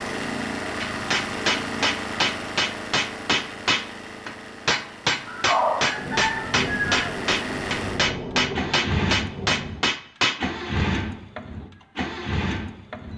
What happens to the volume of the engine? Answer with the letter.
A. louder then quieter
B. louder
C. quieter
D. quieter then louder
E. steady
D.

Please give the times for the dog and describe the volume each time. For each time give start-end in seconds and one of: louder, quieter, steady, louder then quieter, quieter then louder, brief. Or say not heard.
not heard.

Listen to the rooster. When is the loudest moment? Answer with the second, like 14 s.
6 s.